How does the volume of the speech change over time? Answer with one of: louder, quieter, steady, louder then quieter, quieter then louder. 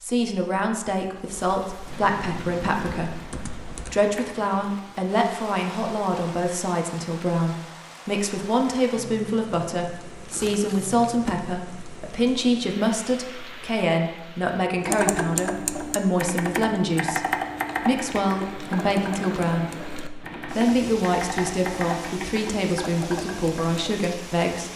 steady.